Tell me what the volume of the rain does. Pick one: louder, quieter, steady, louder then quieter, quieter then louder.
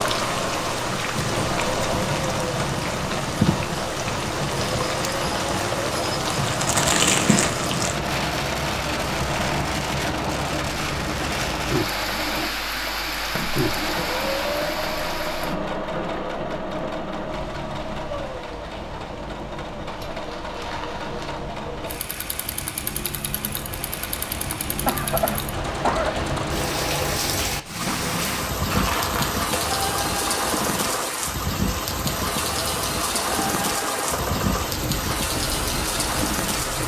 quieter then louder.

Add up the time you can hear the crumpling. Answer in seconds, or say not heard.
4 s.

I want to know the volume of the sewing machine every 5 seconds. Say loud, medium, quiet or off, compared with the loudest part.
loud, loud, loud, loud, medium, loud, loud, loud.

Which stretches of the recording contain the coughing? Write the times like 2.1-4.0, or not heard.
5.2-5.7, 24.9-26.2.